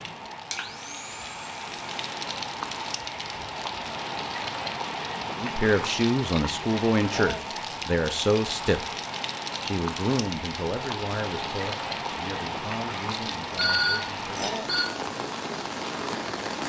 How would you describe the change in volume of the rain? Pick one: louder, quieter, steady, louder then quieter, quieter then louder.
steady.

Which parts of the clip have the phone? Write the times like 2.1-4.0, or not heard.
13.6-14.8.